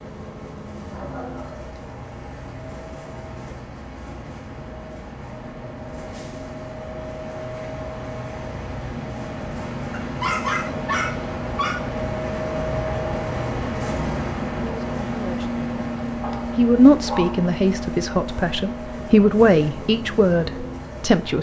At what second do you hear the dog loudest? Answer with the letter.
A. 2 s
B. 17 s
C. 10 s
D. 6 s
C.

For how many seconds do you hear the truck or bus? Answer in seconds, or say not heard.
21 s.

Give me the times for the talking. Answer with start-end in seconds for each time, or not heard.
14.6-15.6, 16.6-21.3.